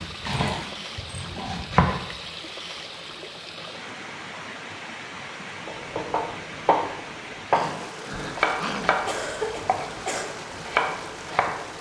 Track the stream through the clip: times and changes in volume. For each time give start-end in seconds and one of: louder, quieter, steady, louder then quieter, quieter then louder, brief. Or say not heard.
0.0-11.7 steady.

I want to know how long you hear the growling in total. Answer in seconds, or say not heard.
3 s.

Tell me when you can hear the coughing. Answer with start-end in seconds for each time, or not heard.
9.1-10.2.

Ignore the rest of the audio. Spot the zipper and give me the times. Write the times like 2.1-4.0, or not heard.
not heard.